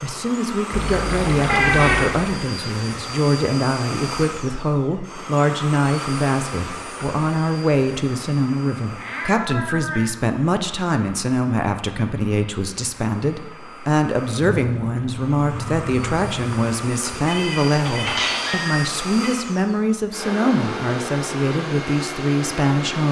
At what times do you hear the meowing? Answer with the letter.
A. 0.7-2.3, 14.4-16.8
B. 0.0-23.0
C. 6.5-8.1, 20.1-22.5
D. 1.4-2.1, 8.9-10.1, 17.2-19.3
D.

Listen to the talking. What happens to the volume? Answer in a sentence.
The loudness of the talking stays about the same.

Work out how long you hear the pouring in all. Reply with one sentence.
You can hear the pouring for 4 seconds altogether.